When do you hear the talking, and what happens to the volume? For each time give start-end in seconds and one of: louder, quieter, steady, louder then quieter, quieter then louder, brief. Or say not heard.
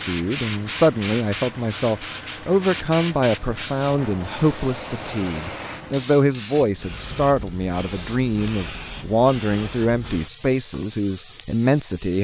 0.0-12.1 steady.